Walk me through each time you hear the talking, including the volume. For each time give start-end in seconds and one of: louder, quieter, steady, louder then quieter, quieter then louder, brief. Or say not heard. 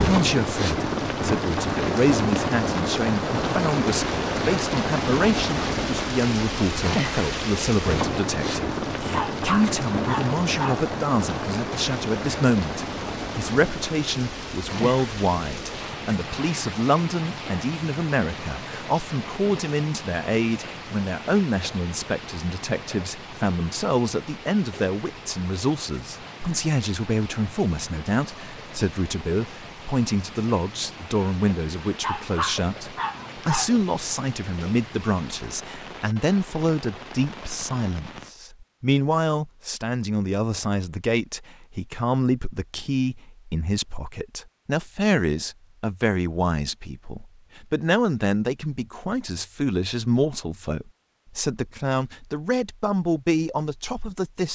0.0-54.5 steady.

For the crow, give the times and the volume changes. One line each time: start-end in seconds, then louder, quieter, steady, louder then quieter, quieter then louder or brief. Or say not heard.
not heard.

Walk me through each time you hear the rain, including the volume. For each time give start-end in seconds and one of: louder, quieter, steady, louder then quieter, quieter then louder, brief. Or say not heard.
0.0-38.4 quieter.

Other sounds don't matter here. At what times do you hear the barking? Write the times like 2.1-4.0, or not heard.
9.0-10.8, 31.8-33.7.